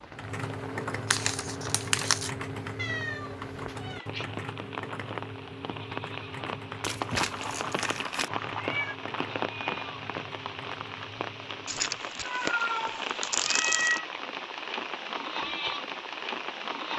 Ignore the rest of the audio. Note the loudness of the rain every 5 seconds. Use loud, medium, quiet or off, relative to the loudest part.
medium, loud, loud, loud.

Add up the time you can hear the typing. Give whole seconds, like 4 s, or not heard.
12 s.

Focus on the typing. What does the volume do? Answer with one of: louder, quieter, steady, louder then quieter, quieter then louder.
quieter.